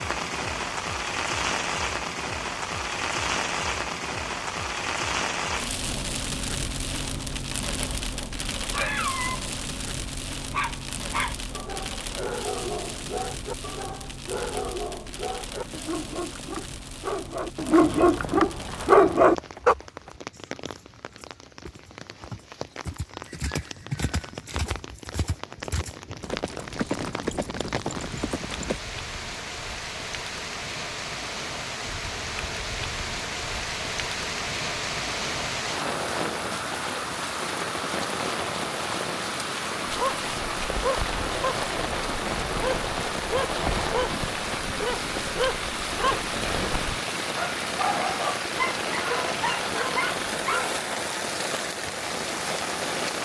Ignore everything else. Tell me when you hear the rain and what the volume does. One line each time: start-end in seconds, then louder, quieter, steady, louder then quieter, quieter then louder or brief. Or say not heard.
0.0-53.2 quieter then louder.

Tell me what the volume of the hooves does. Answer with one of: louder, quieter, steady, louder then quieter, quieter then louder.
louder.